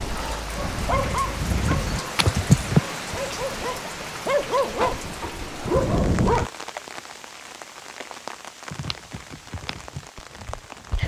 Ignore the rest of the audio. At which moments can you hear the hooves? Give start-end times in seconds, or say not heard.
0.2-2.8, 8.7-11.0.